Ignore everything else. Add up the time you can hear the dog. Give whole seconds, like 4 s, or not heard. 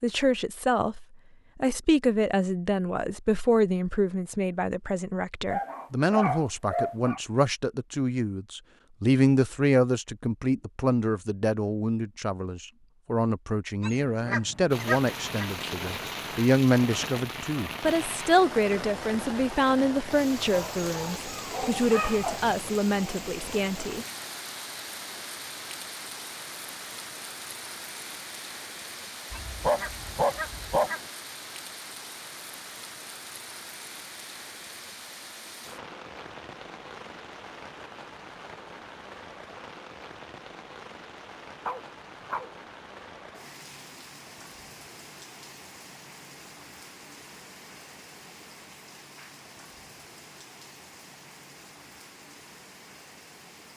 6 s.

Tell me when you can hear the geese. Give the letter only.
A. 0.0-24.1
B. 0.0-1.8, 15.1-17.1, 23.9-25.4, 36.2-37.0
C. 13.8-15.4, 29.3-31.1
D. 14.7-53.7
C.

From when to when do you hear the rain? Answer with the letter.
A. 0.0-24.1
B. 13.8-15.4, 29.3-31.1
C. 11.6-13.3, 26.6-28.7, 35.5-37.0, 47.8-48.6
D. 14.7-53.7
D.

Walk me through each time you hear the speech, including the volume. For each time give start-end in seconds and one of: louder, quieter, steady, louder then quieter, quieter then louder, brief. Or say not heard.
0.0-24.1 steady.